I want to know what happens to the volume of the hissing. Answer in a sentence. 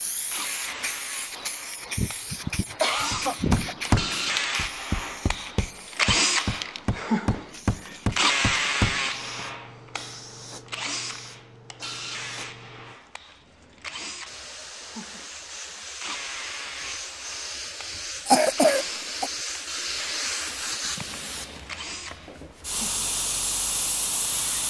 The loudness of the hissing goes down, then up.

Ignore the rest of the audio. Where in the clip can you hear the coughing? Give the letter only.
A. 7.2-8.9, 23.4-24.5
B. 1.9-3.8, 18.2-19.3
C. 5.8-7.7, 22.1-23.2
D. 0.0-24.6
B.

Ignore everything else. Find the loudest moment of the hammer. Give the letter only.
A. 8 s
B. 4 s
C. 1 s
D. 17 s
B.